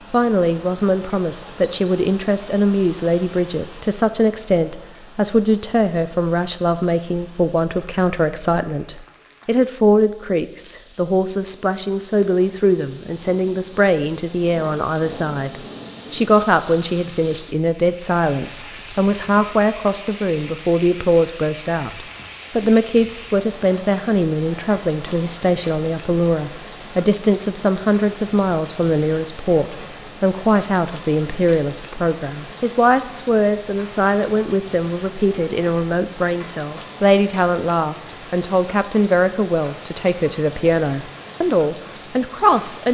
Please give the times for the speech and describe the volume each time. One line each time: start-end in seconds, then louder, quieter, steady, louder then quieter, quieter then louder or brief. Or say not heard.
0.1-42.8 steady.